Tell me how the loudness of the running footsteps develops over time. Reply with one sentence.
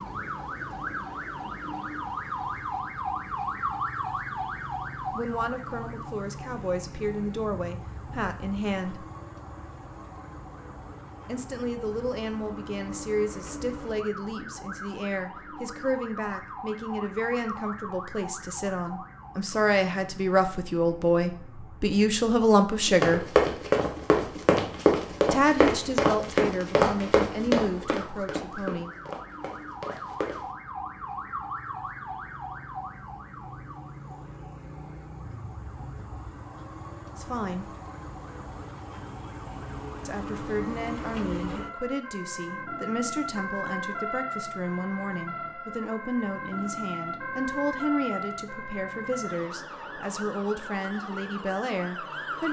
The volume of the running footsteps goes down.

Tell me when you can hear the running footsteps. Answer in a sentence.
The running footsteps can be heard from 22.9 to 30.4 s.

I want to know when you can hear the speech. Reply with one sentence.
You can hear the speech from 5.2 to 9.1 s, from 11.2 to 23.2 s, from 25.3 to 28.9 s, from 37.1 to 37.6 s and from 40.0 to 52.4 s.